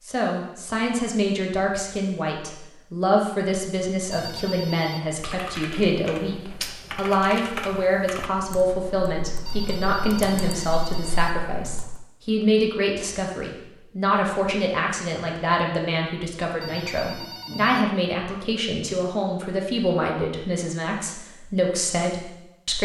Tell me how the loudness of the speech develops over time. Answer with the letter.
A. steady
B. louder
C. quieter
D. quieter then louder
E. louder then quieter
A.